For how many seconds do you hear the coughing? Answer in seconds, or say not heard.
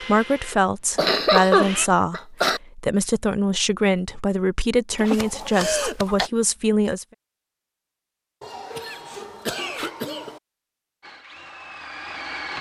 5 s.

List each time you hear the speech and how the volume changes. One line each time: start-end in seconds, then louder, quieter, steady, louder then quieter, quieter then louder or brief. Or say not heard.
0.0-7.0 steady.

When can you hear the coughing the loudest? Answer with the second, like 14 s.
1 s.